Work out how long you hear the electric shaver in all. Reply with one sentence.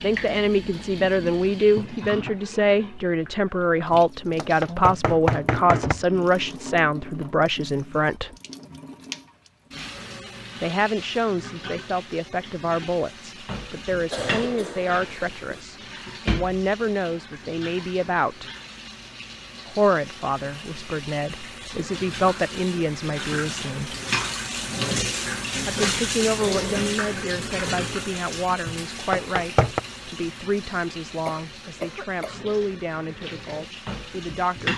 You can't hear the electric shaver here.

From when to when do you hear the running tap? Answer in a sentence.
The running tap can be heard from 0.0 to 34.7 s.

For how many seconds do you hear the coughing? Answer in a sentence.
You can hear the coughing for 3 seconds altogether.